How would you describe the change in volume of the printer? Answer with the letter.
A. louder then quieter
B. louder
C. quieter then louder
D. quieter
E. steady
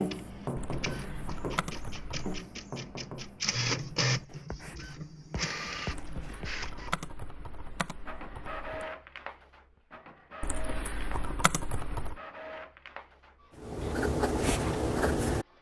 A.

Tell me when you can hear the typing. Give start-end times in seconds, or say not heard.
0.6-2.4, 5.9-8.8, 10.4-12.2.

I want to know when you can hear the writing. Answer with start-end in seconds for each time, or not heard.
0.0-6.5, 13.6-15.4.